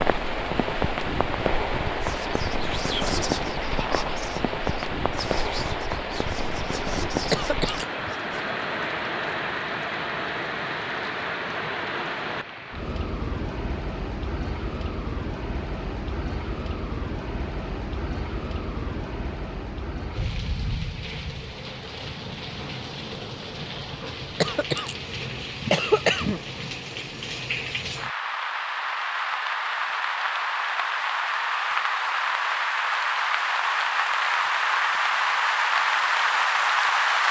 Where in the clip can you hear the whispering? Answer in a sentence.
You can hear the whispering from 2.0 to 8.4 s.